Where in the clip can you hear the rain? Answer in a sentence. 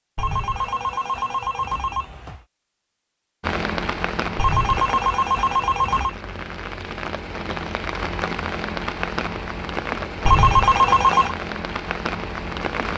The rain can be heard from 3.4 to 12.9 s.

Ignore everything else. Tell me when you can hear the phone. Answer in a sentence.
The phone can be heard from 0.1 to 2.4 s, from 4.3 to 6.2 s and from 10.2 to 11.3 s.